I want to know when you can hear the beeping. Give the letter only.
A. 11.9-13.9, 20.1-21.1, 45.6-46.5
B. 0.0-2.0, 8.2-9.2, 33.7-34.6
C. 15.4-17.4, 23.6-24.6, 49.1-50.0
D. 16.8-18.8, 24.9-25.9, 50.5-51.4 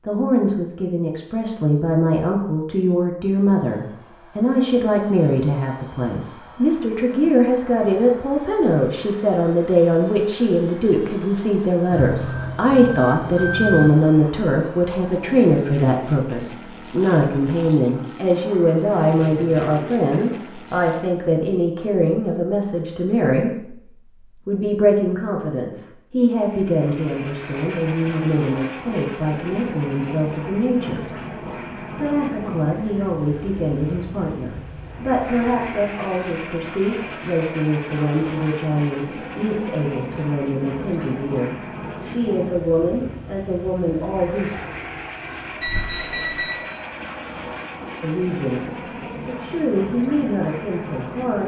A.